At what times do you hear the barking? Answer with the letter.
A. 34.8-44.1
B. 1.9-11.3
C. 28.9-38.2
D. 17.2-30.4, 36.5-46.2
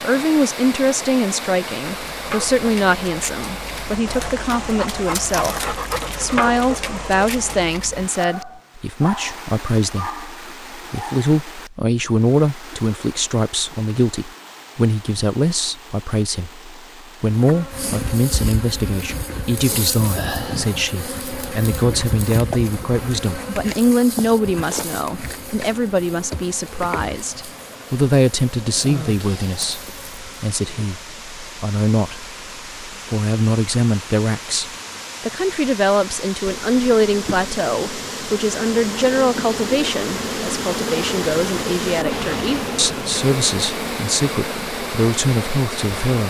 B.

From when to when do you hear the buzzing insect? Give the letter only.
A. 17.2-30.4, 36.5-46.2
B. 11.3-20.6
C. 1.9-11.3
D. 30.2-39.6
A.